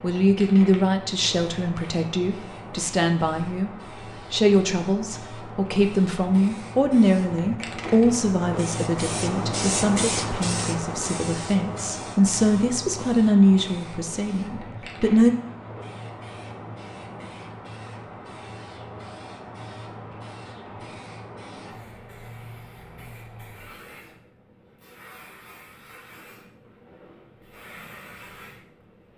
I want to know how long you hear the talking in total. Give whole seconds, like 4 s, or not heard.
15 s.